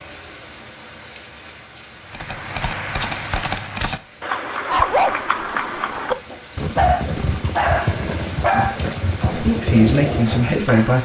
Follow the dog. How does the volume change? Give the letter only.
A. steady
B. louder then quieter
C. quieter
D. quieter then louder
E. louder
B.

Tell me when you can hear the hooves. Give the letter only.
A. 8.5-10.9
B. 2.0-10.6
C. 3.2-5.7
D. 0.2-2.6
B.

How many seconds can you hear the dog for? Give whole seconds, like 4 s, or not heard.
6 s.